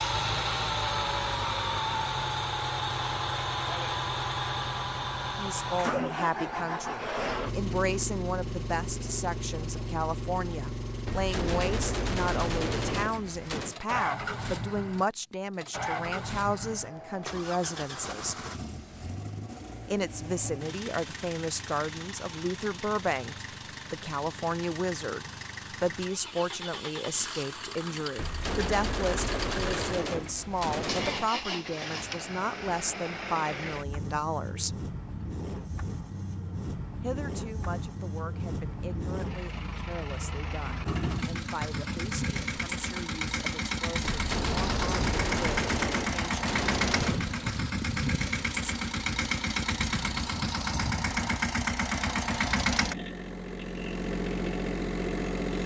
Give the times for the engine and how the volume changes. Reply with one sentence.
The engine can be heard from 0.0 to 55.6 s, getting quieter then louder.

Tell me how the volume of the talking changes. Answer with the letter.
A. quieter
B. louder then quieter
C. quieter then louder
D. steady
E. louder
A.